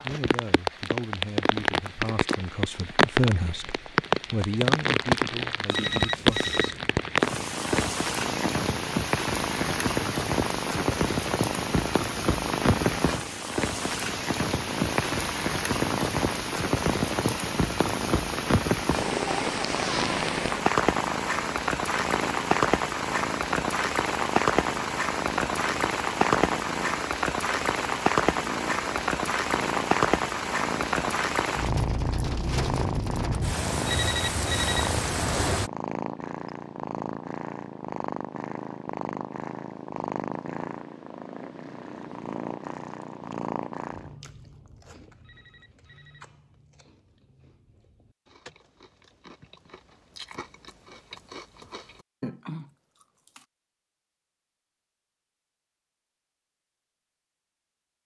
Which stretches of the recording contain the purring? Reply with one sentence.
You can hear the purring from 7.2 to 44.2 s.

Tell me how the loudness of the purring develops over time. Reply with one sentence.
The loudness of the purring stays about the same.